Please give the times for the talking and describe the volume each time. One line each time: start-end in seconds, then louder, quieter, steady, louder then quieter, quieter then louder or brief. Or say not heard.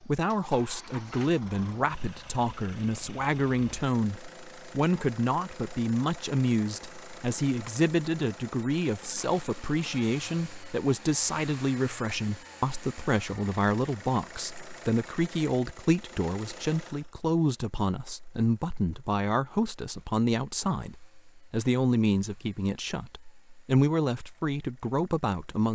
0.0-25.7 steady.